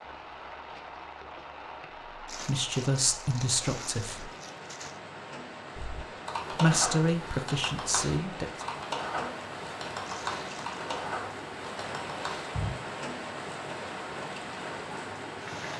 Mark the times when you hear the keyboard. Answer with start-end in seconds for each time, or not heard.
5.8-12.7.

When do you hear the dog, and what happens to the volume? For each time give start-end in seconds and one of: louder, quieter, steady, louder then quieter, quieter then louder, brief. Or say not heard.
not heard.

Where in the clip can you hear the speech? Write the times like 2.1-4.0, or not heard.
2.3-4.3, 6.5-8.7.